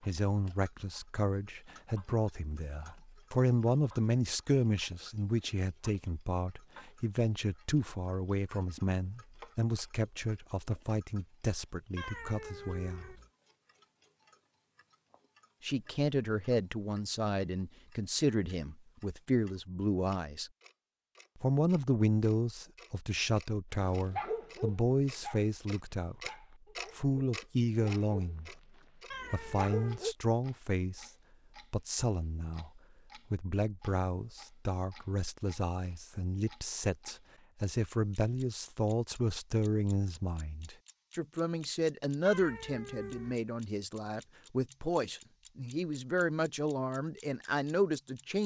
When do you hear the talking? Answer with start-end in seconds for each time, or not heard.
0.0-13.2, 15.6-20.5, 21.4-28.6, 29.3-31.1, 31.7-48.4.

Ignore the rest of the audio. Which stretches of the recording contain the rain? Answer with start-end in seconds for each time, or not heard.
not heard.